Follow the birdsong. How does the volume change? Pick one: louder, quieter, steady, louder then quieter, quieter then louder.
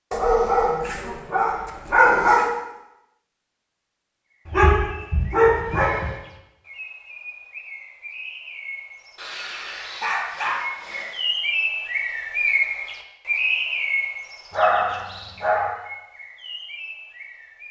louder then quieter.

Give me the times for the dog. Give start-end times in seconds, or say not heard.
0.1-2.5, 4.5-6.1, 9.2-11.2, 14.5-15.7.